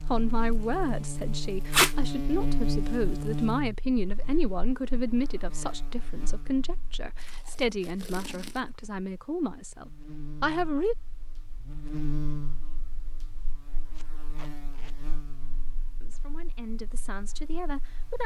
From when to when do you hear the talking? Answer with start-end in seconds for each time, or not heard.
0.1-10.9, 16.0-18.2.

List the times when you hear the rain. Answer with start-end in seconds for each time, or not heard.
not heard.